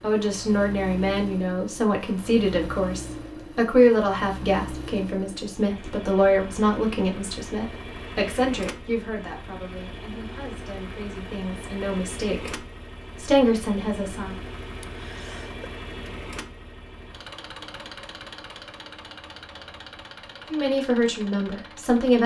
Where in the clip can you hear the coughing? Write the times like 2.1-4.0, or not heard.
14.8-15.7.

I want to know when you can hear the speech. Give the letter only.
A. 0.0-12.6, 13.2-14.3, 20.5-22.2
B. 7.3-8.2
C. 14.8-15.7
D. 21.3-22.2
A.